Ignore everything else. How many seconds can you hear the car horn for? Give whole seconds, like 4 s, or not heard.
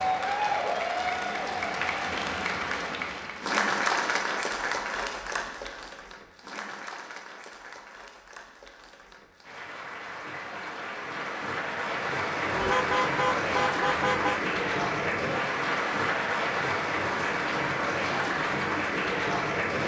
2 s.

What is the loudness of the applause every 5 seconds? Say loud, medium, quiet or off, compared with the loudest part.
loud, quiet, loud, loud.